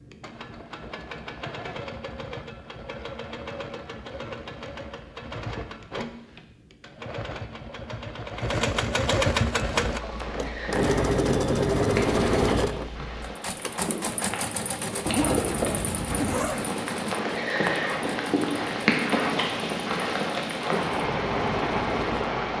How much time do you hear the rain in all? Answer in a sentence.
You can hear the rain for 13 seconds altogether.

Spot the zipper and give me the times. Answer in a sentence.
You can hear the zipper from 15.1 to 16.6 s.